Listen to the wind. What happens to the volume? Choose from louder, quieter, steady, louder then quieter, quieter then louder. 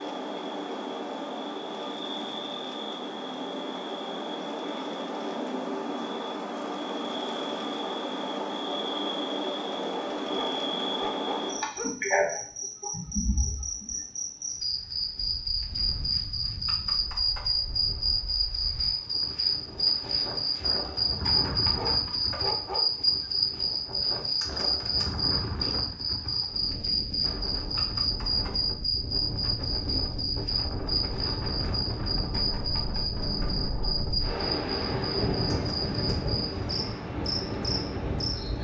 louder.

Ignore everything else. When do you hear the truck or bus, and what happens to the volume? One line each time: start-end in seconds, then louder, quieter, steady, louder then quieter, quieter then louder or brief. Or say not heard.
not heard.